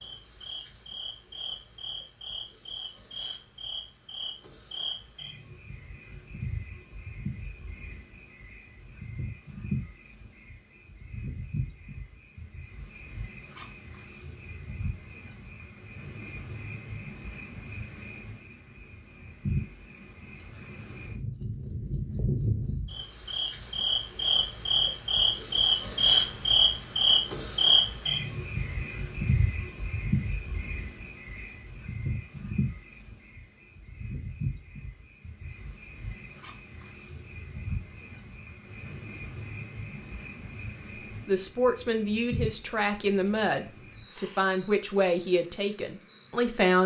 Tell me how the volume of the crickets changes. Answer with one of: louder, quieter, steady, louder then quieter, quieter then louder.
louder then quieter.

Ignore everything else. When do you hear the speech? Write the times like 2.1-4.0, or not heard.
41.2-46.8.